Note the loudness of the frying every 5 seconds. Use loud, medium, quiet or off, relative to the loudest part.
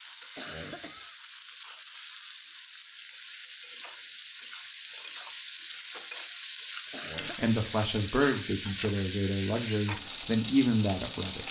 medium, loud, loud.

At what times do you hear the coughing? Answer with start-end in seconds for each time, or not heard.
0.3-1.1, 6.9-7.5.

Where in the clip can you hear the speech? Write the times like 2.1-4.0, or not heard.
7.3-11.4.